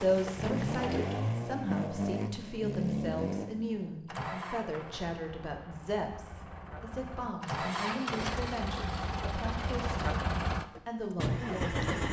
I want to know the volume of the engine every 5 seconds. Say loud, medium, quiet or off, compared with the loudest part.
loud, medium, loud.